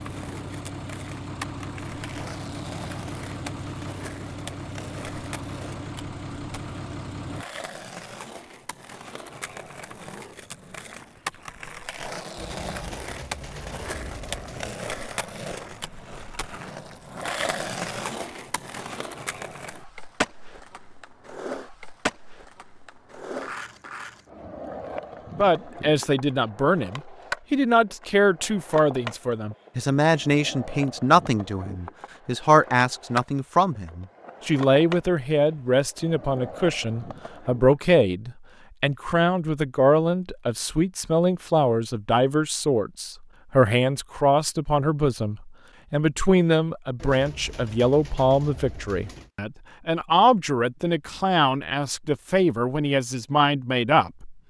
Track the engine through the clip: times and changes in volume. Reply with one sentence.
The engine can be heard from 0.0 to 7.5 s, at a steady volume.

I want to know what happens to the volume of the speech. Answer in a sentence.
The volume of the speech stays about the same.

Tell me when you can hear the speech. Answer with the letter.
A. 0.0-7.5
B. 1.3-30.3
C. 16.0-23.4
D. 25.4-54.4
D.